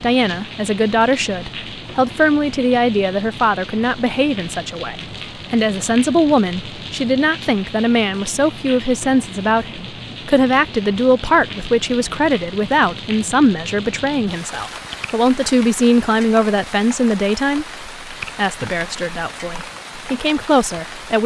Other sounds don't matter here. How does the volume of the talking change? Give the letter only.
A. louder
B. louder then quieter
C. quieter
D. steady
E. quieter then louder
D.